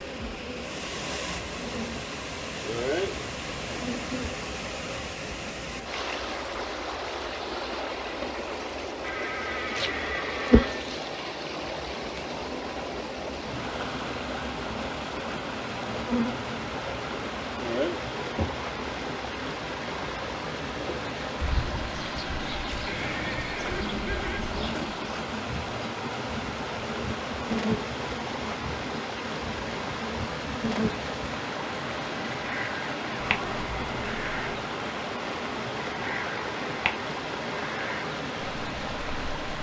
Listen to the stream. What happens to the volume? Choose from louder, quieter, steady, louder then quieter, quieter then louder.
steady.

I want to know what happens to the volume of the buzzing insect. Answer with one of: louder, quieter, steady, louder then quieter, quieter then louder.
steady.